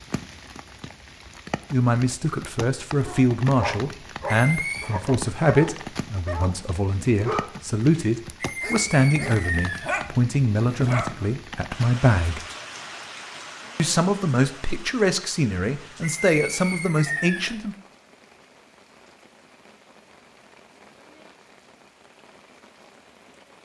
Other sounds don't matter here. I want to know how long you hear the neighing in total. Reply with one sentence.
You can hear the neighing for 4 seconds altogether.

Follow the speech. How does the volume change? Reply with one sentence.
The loudness of the speech stays about the same.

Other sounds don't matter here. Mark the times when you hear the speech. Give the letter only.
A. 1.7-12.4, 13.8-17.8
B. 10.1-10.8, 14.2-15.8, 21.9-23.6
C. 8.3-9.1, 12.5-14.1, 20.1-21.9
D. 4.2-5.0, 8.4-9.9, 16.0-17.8
A.